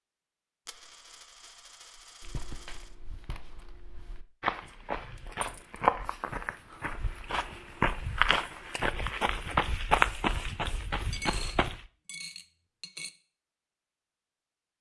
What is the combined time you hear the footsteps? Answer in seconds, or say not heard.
10 s.